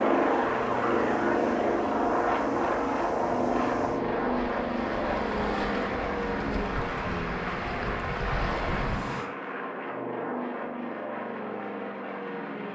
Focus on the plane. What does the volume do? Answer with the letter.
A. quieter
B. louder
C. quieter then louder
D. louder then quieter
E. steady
A.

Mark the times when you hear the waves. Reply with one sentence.
The waves can be heard from 0.0 to 9.3 s.